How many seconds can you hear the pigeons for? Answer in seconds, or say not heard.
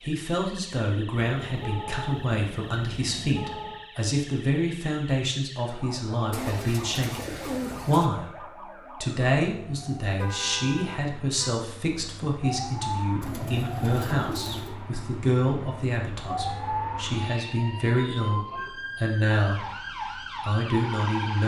3 s.